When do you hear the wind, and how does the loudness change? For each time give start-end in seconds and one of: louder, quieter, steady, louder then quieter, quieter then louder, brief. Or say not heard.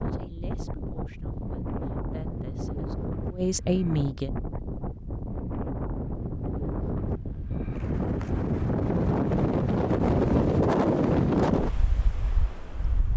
0.0-13.1 louder.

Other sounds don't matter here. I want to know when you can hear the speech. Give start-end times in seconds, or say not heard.
0.0-4.3.